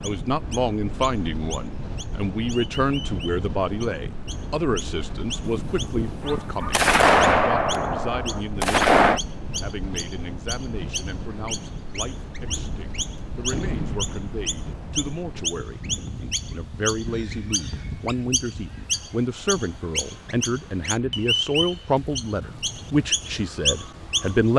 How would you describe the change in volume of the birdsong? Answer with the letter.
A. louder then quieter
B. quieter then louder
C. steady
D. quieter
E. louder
E.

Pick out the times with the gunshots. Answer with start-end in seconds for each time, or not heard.
5.5-9.2, 12.4-15.1.